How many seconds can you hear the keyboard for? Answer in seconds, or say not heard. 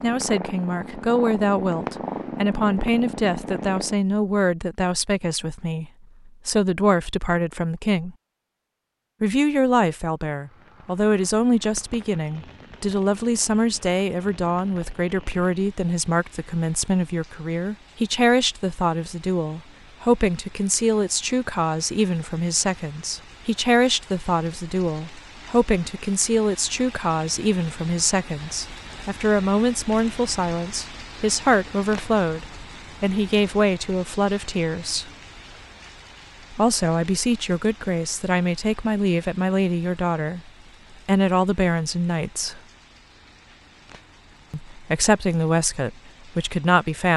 not heard.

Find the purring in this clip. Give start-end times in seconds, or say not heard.
0.0-4.0.